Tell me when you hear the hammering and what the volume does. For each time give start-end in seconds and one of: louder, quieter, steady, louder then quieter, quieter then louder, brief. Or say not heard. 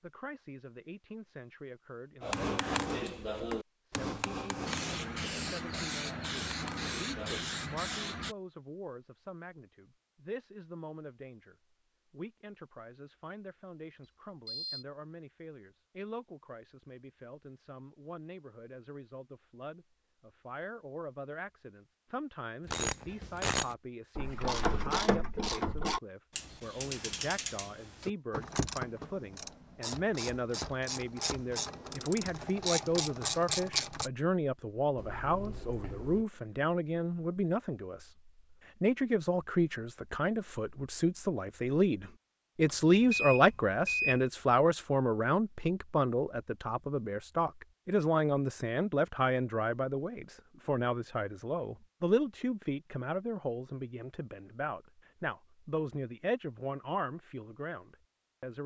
2.2-7.4 quieter.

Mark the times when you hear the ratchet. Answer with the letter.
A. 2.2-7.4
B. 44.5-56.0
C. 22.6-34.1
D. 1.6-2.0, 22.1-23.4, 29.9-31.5
C.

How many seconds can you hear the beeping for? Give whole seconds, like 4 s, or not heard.
3 s.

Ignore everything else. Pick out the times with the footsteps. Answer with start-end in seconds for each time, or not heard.
not heard.